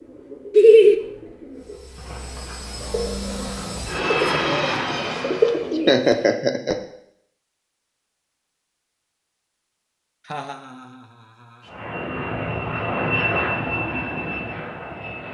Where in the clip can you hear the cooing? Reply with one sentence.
The cooing can be heard from 0.0 to 6.4 s.